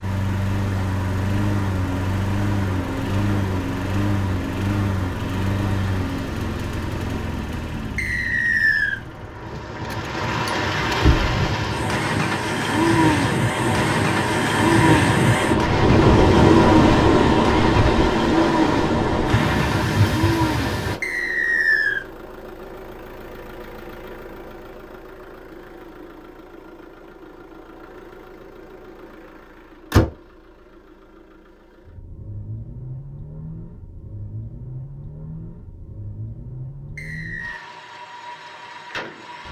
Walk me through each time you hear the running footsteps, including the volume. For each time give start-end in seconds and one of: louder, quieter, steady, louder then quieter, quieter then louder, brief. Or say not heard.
not heard.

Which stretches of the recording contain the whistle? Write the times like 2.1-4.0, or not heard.
8.0-9.0, 21.0-22.1, 37.0-37.6.